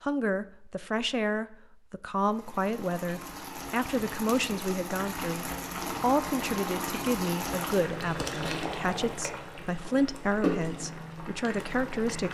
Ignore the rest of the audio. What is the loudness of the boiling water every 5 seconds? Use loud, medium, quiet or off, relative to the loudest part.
medium, loud, loud.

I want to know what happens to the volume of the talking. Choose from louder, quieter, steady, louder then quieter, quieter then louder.
steady.